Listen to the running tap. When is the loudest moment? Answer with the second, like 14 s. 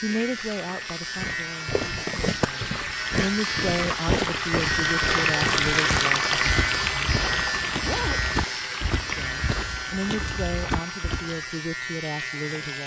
6 s.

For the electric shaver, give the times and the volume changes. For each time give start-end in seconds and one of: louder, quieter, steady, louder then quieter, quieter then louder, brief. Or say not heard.
0.0-12.8 louder then quieter.